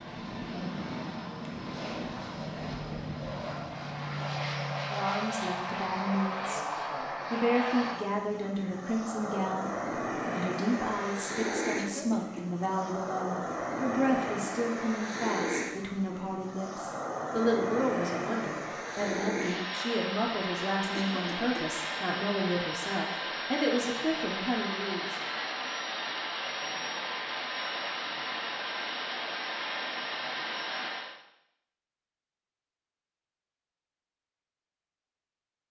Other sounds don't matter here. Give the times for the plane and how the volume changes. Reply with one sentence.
You can hear the plane from 0.0 to 31.1 s, at a steady volume.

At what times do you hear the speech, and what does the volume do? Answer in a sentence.
You can hear the speech briefly from 4.9 to 6.7 s; and from 7.3 to 25.1 s, at a steady volume.